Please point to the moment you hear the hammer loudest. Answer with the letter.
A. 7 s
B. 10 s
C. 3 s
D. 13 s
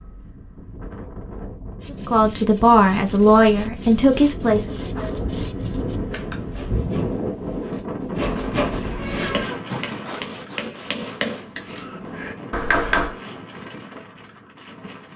D.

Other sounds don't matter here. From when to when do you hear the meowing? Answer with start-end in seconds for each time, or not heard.
4.8-5.3, 8.8-9.7.